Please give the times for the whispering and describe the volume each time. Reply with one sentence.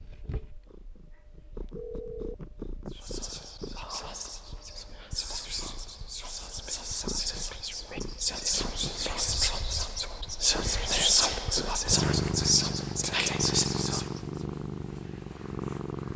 You can hear the whispering from 2.9 to 14.2 s, getting louder.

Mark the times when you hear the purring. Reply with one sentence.
You can hear the purring from 0.0 to 16.1 s.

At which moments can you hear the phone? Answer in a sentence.
You can hear the phone from 1.8 to 2.9 s and from 8.6 to 9.5 s.